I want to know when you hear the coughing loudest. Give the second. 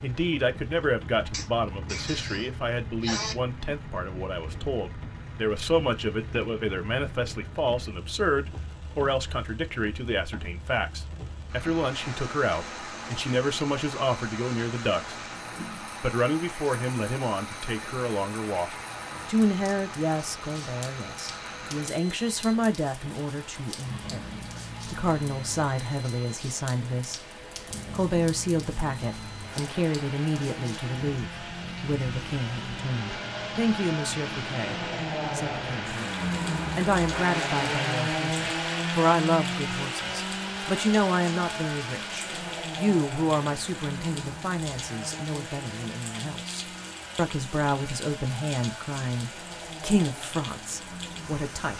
3 s.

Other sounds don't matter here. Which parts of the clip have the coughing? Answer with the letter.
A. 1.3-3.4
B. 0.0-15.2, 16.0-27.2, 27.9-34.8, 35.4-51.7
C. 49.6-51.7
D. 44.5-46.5
A.